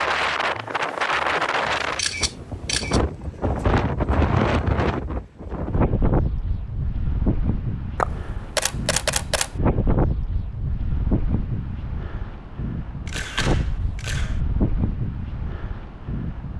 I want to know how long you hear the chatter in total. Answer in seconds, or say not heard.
not heard.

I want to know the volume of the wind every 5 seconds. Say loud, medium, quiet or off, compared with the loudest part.
loud, loud, medium, medium.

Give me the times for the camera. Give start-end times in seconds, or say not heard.
1.9-3.0, 8.0-9.5, 13.1-14.4.